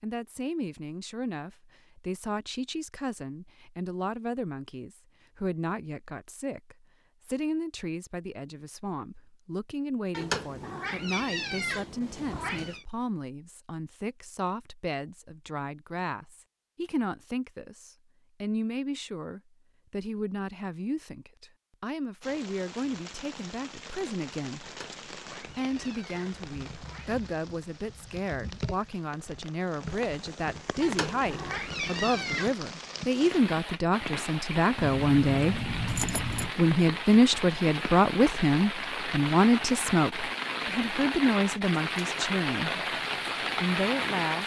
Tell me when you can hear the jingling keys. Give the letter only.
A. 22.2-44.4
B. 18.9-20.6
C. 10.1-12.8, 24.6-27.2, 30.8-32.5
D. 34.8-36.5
D.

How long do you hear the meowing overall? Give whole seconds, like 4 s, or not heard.
7 s.